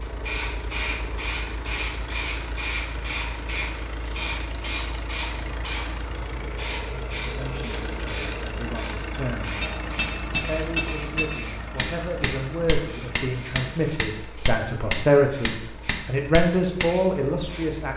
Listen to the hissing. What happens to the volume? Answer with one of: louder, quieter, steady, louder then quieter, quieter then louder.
quieter.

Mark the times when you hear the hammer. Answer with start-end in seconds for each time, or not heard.
9.6-17.1.